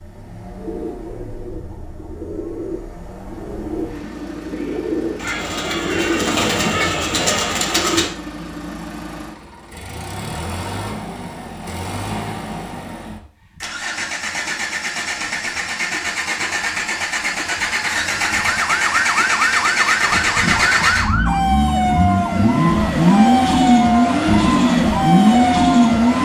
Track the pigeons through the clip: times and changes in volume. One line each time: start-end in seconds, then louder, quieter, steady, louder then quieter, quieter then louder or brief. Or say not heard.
0.6-8.1 louder.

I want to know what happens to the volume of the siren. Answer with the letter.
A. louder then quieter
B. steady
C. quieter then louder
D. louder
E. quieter
B.